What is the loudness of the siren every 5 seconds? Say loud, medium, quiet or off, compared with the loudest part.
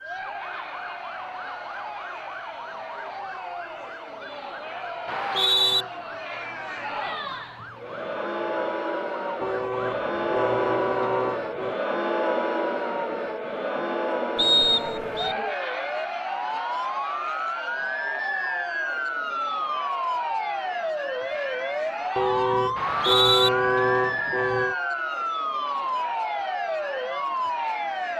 quiet, quiet, medium, loud, loud, loud.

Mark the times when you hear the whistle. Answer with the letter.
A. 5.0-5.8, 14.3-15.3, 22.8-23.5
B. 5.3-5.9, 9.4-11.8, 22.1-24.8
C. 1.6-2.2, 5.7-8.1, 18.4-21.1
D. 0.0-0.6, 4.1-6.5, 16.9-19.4
A.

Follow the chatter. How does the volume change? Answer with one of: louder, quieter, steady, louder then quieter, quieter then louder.
louder then quieter.